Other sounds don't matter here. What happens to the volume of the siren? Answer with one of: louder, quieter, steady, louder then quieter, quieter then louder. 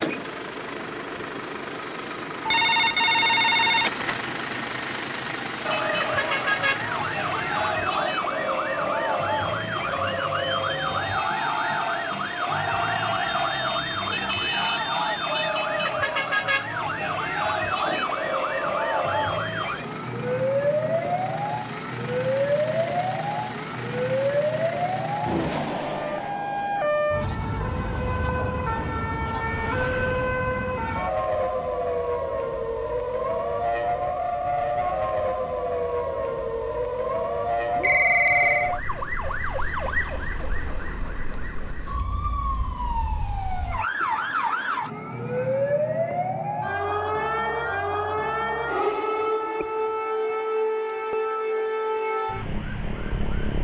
steady.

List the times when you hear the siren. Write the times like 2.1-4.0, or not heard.
5.7-53.5.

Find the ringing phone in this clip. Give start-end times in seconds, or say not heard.
2.5-4.2, 29.6-30.8, 37.8-38.8.